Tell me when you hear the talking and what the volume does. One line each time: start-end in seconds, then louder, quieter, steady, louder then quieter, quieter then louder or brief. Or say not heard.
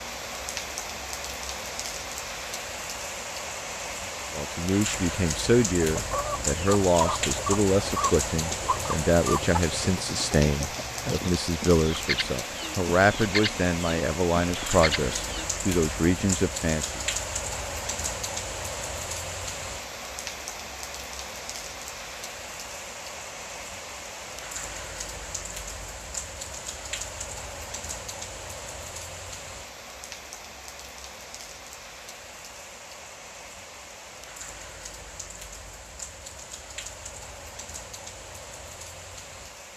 4.3-17.0 steady.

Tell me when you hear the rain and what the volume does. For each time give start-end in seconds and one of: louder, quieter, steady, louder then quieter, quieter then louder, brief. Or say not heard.
0.0-39.7 quieter.